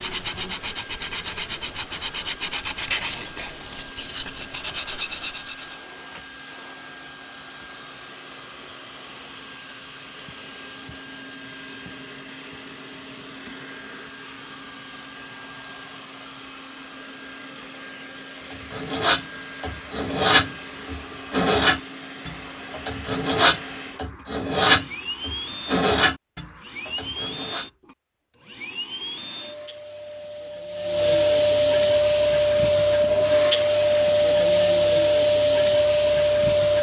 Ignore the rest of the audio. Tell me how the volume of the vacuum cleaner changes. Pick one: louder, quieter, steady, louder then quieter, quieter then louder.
louder.